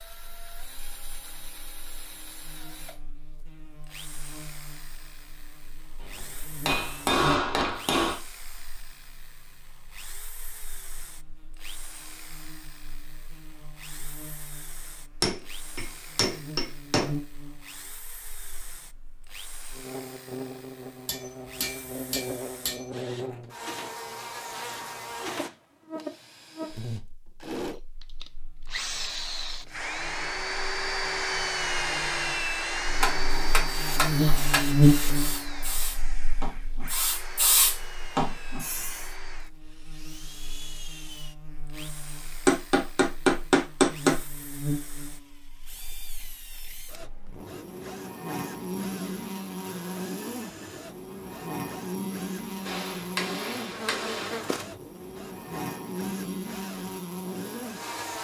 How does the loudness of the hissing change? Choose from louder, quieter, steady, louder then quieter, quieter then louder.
louder.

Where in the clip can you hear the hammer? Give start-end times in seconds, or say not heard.
6.0-8.2, 15.2-17.1, 21.1-22.9, 33.0-34.6, 42.5-44.1, 52.6-54.4.